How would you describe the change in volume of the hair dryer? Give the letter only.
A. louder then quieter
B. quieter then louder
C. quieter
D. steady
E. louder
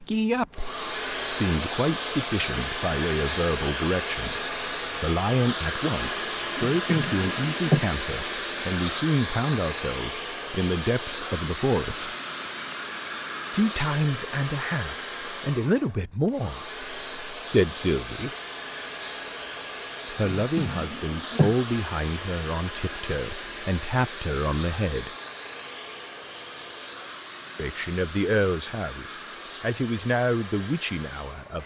C.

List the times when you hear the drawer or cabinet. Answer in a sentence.
You can hear the drawer or cabinet from 6.5 to 7.8 s and from 20.4 to 21.6 s.